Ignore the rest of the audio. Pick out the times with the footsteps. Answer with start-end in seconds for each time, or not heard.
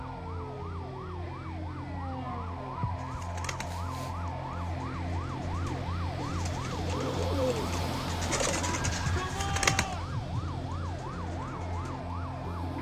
not heard.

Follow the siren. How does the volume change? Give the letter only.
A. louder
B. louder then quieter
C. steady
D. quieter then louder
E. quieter
C.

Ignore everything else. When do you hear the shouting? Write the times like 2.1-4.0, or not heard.
8.9-10.2.